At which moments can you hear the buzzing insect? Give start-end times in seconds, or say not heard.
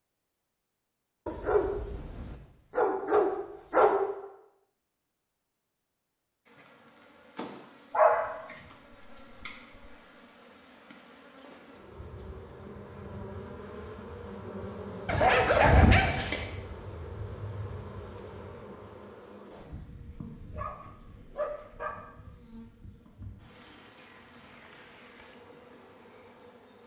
6.5-26.8.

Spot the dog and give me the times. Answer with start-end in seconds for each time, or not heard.
1.2-4.0, 7.9-9.8, 15.1-16.4, 20.5-21.9.